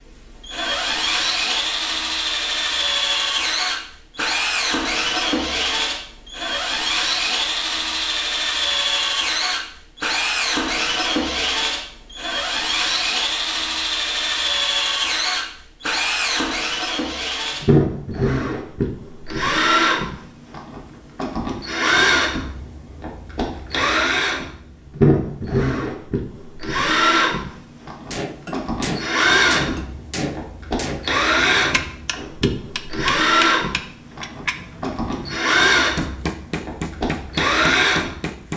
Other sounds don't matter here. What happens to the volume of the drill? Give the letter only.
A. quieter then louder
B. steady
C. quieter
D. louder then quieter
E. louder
B.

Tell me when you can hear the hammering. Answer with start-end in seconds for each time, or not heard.
28.1-38.5.